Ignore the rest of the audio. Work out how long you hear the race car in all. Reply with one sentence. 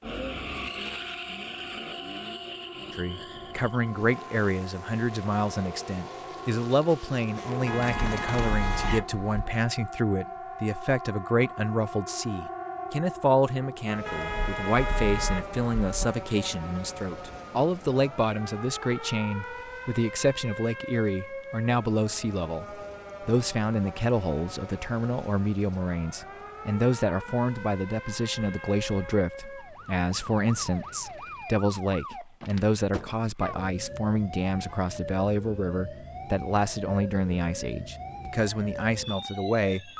The race car can be heard for 9 seconds in total.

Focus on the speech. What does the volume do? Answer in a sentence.
The loudness of the speech stays about the same.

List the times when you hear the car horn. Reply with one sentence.
The car horn can be heard from 7.7 to 9.6 s, from 14.1 to 16.1 s and from 28.1 to 29.2 s.